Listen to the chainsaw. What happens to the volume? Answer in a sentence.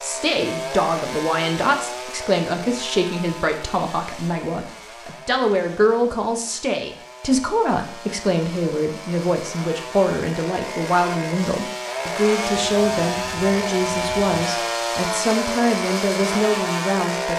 The volume of the chainsaw goes down, then up.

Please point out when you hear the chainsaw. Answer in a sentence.
You can hear the chainsaw from 0.0 to 17.3 s.